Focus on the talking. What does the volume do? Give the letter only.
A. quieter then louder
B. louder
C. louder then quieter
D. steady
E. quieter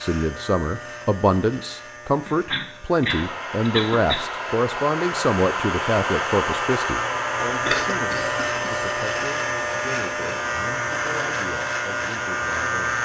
E.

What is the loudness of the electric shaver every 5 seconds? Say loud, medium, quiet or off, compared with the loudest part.
quiet, loud, loud.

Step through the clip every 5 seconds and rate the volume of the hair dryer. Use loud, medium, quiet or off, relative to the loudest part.
loud, loud, medium.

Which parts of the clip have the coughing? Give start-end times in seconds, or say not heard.
2.2-4.2, 7.5-8.8.